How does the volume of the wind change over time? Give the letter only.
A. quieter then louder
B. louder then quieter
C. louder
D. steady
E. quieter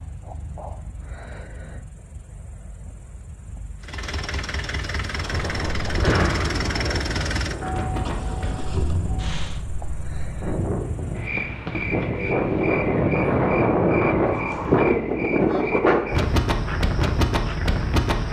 A.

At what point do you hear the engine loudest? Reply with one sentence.
The volume of the engine peaks at 7 seconds.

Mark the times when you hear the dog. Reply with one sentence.
The dog can't be heard in this clip.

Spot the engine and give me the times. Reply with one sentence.
The engine can be heard from 3.8 to 9.6 s.